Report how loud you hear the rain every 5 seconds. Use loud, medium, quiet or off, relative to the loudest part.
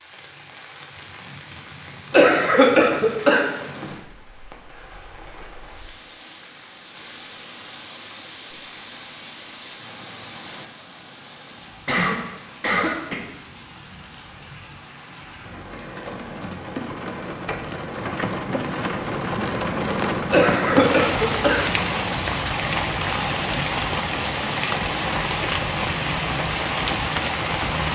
quiet, quiet, quiet, medium, loud, loud.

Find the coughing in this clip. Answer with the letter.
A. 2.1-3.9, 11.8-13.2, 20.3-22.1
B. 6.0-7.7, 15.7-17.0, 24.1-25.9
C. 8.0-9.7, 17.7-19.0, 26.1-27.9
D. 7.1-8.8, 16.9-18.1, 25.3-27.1
A.